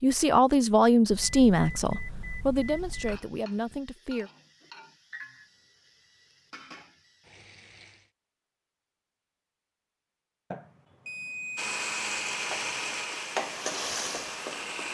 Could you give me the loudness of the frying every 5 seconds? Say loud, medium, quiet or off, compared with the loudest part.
quiet, quiet, loud.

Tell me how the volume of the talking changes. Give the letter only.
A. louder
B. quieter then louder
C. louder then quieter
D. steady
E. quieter
E.